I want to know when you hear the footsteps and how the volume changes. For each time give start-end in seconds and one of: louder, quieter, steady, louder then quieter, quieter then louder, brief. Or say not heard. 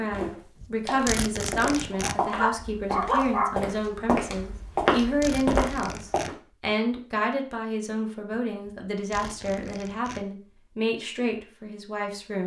0.1-6.3 louder.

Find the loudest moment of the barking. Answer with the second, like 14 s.
3 s.